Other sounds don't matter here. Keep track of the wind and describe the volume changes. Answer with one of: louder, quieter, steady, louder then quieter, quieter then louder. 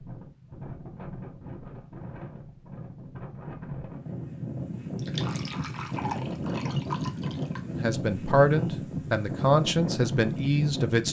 louder.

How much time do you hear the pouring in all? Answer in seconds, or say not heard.
3 s.